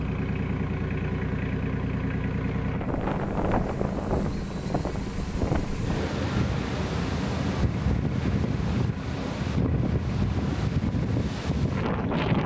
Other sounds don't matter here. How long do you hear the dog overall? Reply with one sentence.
You can't hear the dog here.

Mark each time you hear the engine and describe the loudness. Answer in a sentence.
You can hear the engine from 0.0 to 12.4 s, getting quieter.